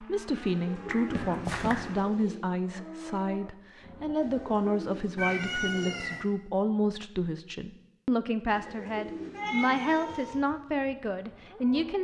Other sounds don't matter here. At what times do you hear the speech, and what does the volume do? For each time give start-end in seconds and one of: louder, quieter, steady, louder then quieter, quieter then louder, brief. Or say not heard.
0.0-12.0 steady.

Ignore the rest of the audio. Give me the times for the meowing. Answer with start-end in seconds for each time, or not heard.
0.9-1.9, 5.2-6.2, 8.4-10.4.